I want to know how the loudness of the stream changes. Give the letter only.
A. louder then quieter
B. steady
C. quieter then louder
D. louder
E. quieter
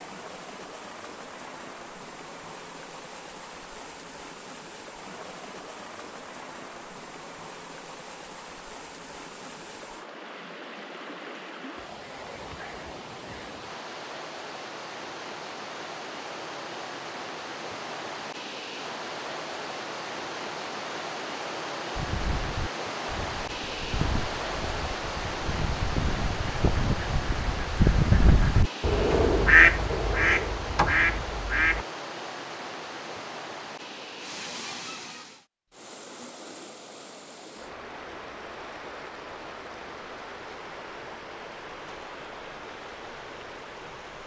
A.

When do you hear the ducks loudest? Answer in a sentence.
The volume of the ducks peaks at 30 seconds.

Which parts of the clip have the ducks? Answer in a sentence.
You can hear the ducks from 21.9 to 31.9 s.